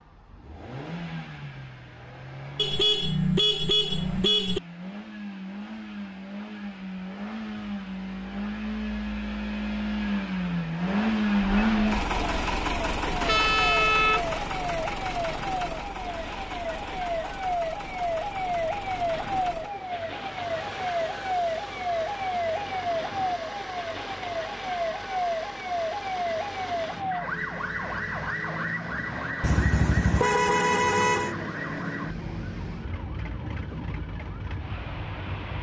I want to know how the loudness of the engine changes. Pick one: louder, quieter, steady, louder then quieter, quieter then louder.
louder then quieter.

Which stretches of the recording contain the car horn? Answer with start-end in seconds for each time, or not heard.
2.5-4.6, 13.2-14.3, 29.4-31.4.